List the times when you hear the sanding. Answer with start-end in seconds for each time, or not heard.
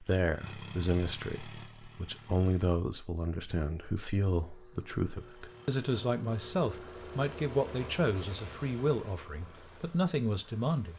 not heard.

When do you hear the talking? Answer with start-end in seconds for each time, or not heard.
0.0-10.9.